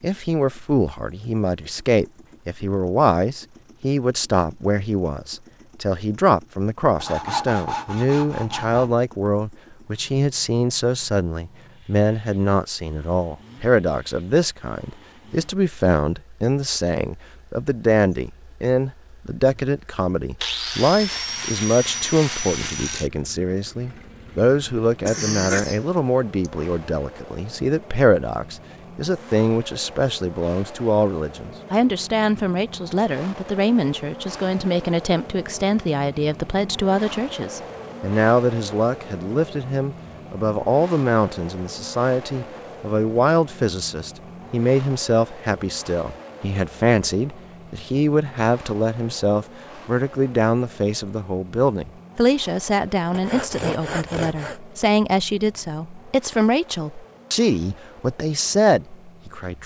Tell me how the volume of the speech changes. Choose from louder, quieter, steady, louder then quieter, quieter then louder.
steady.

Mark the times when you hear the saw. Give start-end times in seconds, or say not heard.
7.0-8.9, 20.4-23.1, 53.1-54.6.